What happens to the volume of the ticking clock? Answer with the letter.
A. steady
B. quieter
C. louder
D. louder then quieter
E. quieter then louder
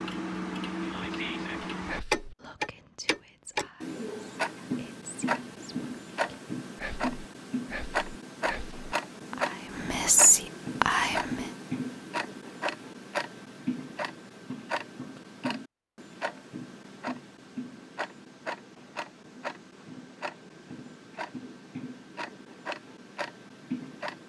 B.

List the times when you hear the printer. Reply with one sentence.
The printer can't be heard in this clip.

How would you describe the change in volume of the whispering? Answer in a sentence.
The volume of the whispering goes down, then up.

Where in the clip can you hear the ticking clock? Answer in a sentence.
You can hear the ticking clock from 0.0 to 24.2 s.